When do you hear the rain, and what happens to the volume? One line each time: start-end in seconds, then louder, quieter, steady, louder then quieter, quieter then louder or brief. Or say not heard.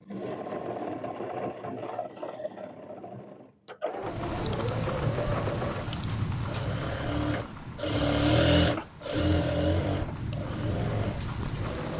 4.0-11.9 quieter then louder.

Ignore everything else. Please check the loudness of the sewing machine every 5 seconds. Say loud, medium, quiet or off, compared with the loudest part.
medium, loud, medium.